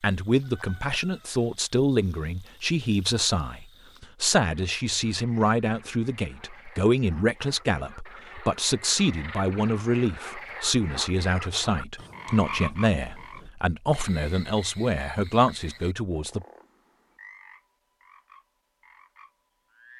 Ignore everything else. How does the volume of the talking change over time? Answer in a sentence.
The loudness of the talking stays about the same.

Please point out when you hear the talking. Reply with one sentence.
The talking can be heard from 0.0 to 16.4 s.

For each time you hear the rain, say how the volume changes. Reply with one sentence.
The rain can't be heard in this clip.